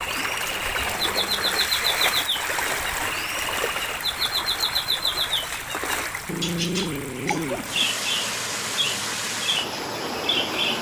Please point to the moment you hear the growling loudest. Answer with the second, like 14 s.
7 s.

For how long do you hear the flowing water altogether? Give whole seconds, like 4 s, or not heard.
11 s.